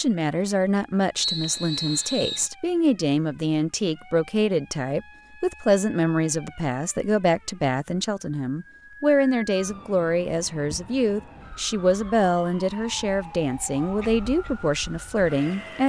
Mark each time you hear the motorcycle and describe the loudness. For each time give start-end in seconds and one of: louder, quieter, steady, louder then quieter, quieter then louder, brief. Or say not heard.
not heard.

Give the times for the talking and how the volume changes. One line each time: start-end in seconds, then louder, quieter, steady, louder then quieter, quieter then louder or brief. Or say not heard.
0.0-15.8 steady.